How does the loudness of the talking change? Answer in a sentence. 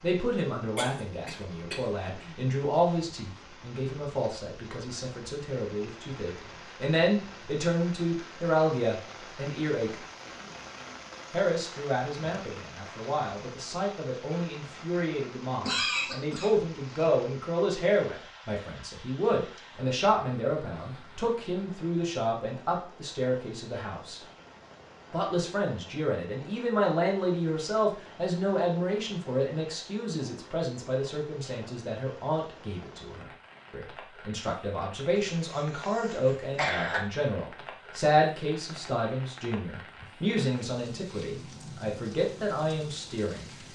The volume of the talking stays about the same.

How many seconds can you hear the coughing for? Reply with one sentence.
You can hear the coughing for 5 seconds altogether.